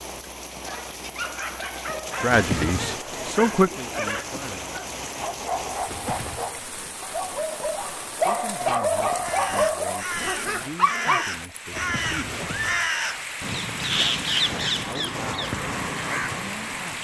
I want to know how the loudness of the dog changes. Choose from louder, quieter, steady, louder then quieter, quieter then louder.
louder.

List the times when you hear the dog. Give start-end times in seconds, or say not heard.
0.7-11.3.